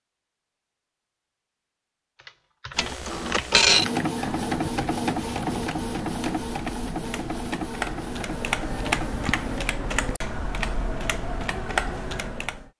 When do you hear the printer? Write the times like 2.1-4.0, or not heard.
2.8-9.7.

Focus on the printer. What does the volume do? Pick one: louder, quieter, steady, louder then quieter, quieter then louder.
quieter.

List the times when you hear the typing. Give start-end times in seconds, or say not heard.
2.1-12.7.